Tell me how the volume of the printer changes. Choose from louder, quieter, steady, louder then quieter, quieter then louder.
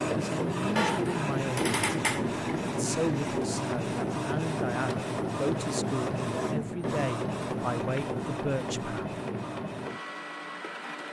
quieter.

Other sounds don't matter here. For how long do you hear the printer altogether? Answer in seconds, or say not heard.
11 s.